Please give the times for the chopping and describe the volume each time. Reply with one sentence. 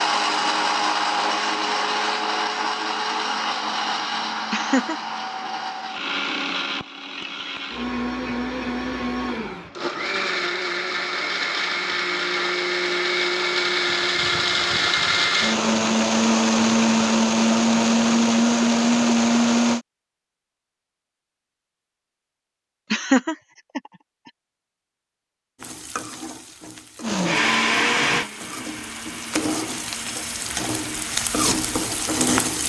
You can't hear the chopping here.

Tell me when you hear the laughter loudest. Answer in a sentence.
The volume of the laughter peaks at 23 seconds.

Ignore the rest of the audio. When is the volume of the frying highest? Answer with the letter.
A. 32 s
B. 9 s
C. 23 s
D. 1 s
A.